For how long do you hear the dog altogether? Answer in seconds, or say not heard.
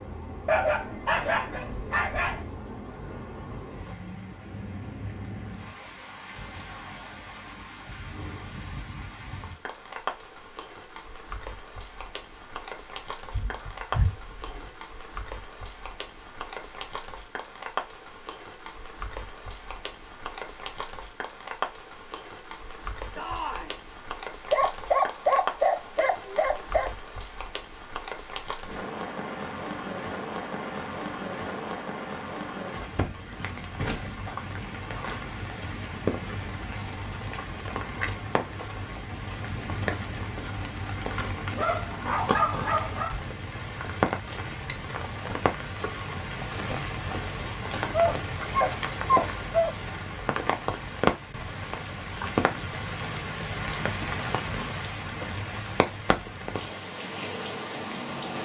9 s.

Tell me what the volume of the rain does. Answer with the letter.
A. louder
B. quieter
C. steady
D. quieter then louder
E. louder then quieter
A.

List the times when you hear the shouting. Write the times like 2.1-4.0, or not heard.
23.1-23.8.